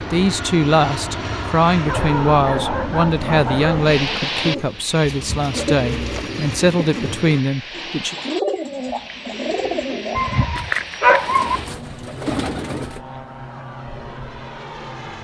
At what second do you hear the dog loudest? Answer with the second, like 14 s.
11 s.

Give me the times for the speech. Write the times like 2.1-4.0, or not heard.
0.0-8.2.